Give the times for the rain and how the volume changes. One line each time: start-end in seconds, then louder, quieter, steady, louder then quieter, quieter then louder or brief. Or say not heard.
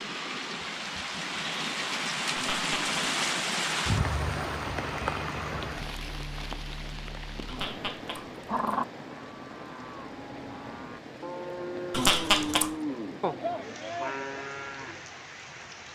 0.0-15.9 quieter.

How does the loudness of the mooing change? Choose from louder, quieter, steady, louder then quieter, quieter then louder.
louder.